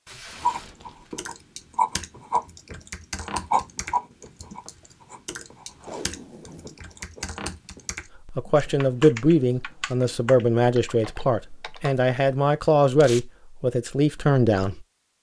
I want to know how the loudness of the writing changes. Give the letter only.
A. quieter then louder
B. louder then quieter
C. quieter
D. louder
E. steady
C.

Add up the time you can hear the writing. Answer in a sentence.
The writing can be heard for 8 seconds in total.